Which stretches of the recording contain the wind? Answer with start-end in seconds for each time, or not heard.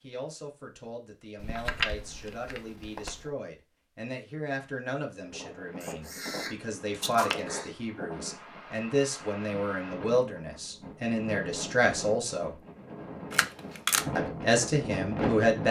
5.2-15.6.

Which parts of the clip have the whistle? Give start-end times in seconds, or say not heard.
not heard.